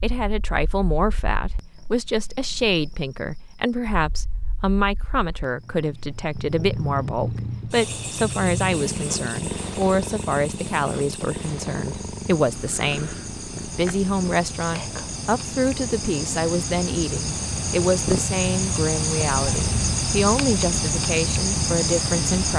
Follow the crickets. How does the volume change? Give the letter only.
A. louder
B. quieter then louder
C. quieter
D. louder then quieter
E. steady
A.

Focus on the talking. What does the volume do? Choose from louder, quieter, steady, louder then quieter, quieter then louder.
steady.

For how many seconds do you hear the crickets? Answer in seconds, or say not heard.
22 s.